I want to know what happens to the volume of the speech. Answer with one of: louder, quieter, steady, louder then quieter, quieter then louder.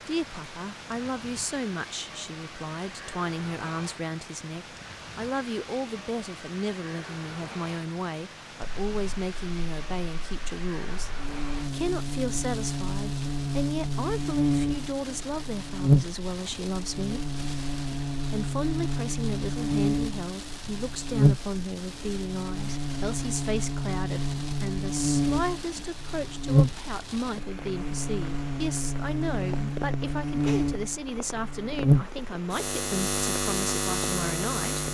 steady.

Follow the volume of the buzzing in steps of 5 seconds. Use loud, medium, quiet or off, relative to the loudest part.
off, off, loud, loud, loud, loud, loud.